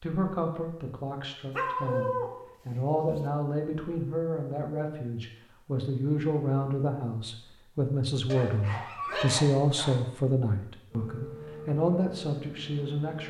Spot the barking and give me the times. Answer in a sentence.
You can hear the barking from 1.5 to 3.2 s and from 8.3 to 10.0 s.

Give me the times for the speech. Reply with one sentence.
You can hear the speech from 0.0 to 13.2 s.